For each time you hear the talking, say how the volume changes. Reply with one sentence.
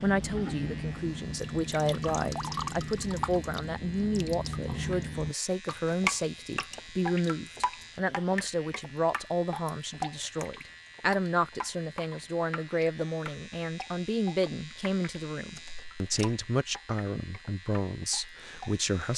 You can hear the talking from 0.0 to 19.1 s, at a steady volume.